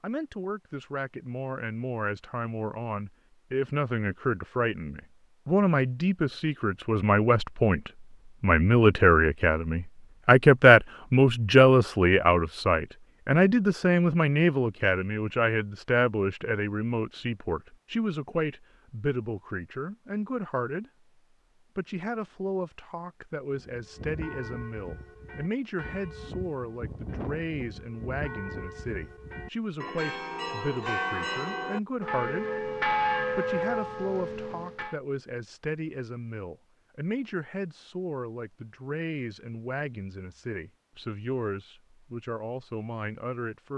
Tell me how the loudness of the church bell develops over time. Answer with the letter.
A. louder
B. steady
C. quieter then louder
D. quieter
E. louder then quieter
A.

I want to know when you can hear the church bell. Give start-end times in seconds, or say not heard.
23.5-35.0.